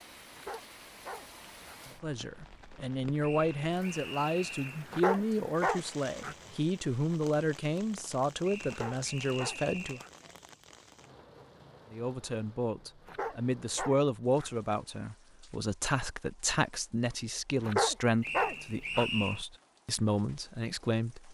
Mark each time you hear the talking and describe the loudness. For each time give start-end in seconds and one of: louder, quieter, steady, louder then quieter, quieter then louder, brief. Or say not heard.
2.0-10.0 steady
11.9-21.2 steady.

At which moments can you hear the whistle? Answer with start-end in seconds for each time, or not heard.
3.2-4.8, 8.4-10.1, 18.2-19.4.